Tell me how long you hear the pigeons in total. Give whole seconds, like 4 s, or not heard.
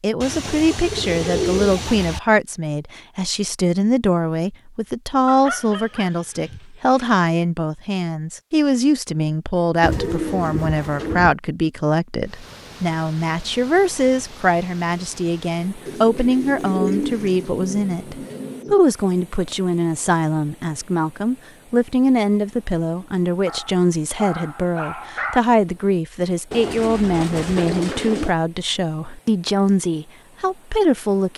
8 s.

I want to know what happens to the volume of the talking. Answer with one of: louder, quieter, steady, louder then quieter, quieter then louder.
steady.